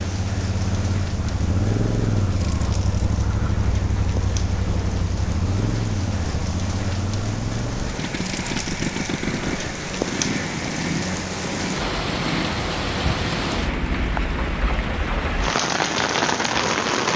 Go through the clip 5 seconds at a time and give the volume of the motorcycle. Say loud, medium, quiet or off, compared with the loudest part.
loud, loud, loud, medium.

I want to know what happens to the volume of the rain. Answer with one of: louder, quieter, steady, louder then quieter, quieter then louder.
louder.